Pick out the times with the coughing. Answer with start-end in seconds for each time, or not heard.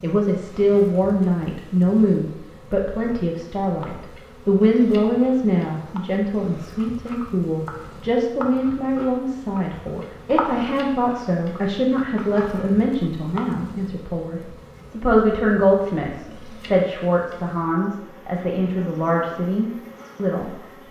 not heard.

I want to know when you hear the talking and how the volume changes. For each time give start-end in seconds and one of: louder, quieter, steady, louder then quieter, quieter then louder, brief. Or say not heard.
0.0-20.8 steady.